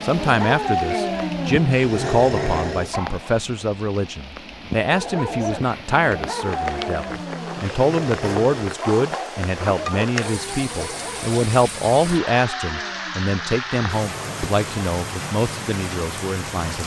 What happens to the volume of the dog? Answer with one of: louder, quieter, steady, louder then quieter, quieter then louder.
quieter.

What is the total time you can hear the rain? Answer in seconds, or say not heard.
17 s.